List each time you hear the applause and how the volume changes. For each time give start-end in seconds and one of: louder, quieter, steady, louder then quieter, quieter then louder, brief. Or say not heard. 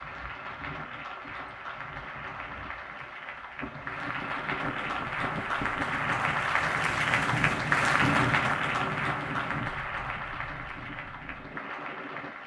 0.0-12.4 louder then quieter.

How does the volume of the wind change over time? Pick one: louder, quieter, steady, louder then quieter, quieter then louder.
louder then quieter.